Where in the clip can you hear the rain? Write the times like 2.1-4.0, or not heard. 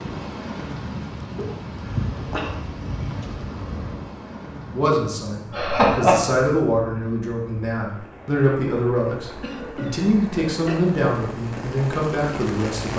0.0-12.9.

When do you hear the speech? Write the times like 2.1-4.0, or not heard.
4.8-12.9.